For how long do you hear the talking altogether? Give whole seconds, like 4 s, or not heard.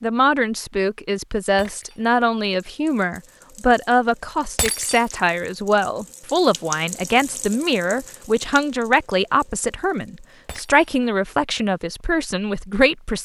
13 s.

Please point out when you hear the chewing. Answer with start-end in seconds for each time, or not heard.
not heard.